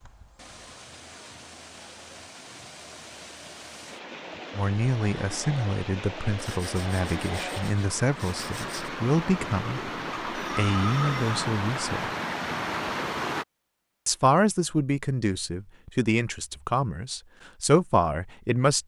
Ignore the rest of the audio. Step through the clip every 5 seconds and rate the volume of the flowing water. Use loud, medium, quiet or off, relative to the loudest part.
quiet, medium, loud, off.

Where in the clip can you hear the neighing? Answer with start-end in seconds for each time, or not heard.
10.3-11.4.